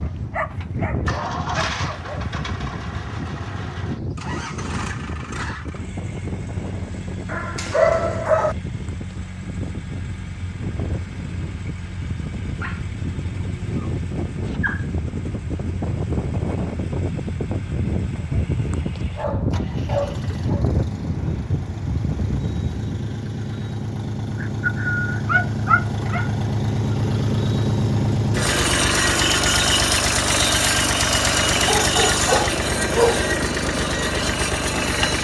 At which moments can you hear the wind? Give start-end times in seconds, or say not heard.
0.0-23.1.